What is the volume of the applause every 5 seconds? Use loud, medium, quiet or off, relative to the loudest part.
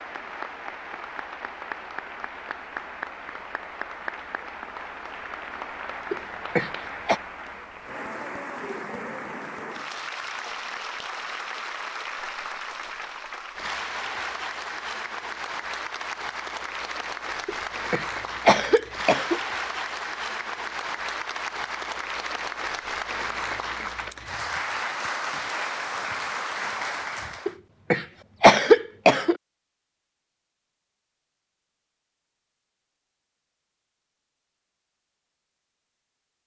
medium, medium, loud, loud, loud, loud, off, off.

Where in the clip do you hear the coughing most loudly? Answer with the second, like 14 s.
29 s.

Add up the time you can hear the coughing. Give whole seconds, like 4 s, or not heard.
5 s.